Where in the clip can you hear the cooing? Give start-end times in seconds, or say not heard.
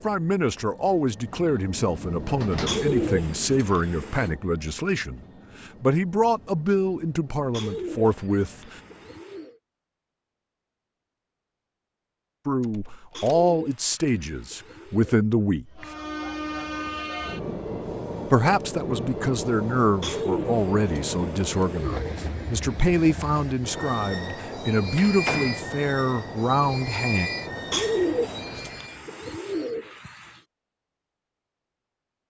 2.6-4.3, 7.5-9.6, 13.1-15.2, 20.0-22.2, 27.7-30.4.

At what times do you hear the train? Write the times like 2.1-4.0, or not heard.
0.0-9.2, 15.8-29.0.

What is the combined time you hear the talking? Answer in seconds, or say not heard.
21 s.